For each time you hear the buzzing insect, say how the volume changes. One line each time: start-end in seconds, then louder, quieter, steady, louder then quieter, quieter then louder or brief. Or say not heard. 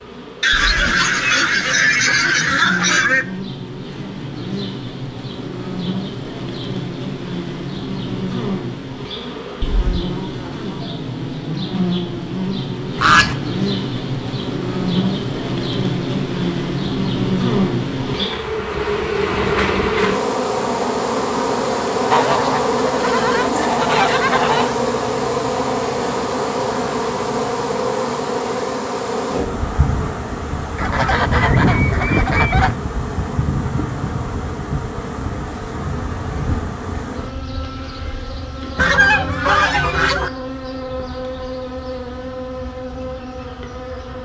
0.0-44.1 louder then quieter.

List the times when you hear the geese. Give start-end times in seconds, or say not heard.
0.4-3.2, 12.9-13.3, 22.1-24.8, 30.8-32.8, 38.8-40.3.